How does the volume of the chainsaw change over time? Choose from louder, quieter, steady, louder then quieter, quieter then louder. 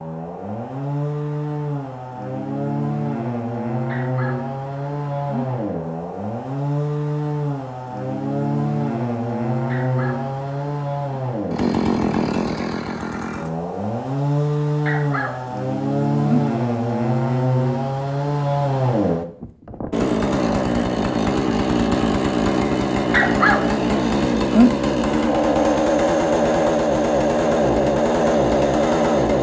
louder.